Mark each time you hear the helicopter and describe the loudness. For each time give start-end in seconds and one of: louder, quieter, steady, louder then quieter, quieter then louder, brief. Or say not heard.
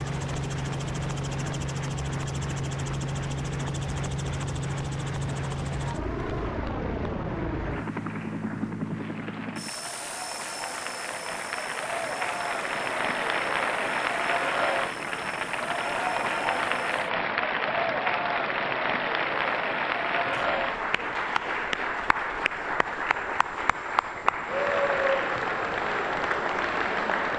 0.0-27.3 quieter.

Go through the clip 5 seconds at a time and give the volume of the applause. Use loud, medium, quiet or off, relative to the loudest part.
quiet, quiet, loud, loud, loud, loud.